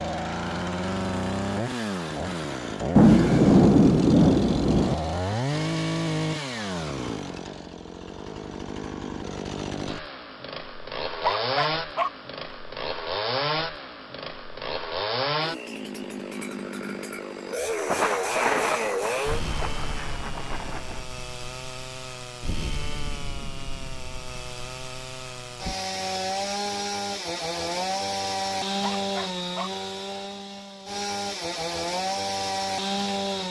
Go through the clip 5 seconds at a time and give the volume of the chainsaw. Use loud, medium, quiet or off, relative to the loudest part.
loud, loud, loud, loud, medium, loud, loud.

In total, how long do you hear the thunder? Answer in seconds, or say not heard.
5 s.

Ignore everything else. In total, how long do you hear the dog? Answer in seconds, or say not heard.
2 s.